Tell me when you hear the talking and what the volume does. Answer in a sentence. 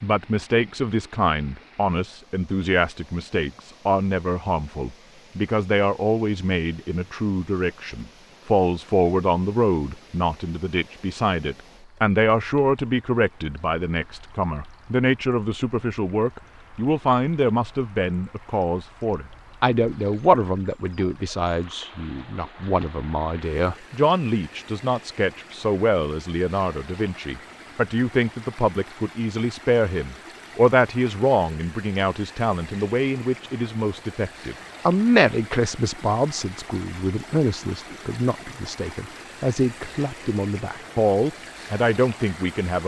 You can hear the talking from 0.0 to 42.8 s, at a steady volume.